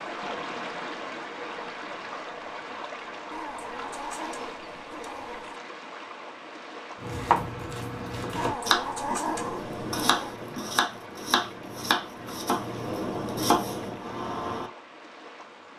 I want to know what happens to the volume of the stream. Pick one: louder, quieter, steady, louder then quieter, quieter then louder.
quieter.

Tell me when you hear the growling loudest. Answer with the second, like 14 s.
9 s.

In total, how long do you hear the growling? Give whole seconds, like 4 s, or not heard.
4 s.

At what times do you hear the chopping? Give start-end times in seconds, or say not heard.
7.0-14.7.